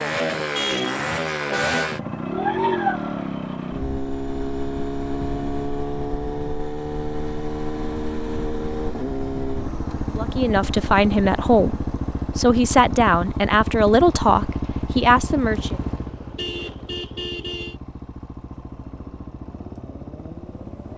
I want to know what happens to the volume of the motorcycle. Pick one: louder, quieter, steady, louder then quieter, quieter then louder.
quieter.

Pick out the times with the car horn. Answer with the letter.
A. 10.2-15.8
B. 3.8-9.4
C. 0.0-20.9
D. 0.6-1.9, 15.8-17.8
D.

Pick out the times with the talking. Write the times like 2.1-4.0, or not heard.
10.2-15.8.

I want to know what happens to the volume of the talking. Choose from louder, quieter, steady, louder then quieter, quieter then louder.
steady.